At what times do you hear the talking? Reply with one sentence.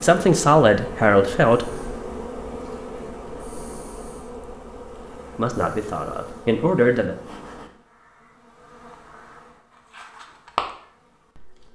The talking can be heard from 0.0 to 1.7 s and from 5.3 to 7.2 s.